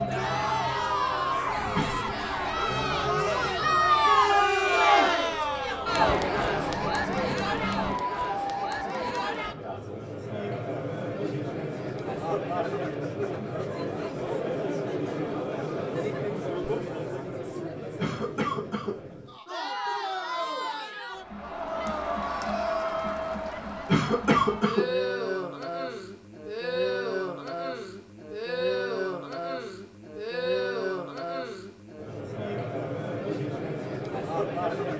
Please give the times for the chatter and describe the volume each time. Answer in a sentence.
The chatter can be heard from 0.1 to 34.9 s, getting quieter.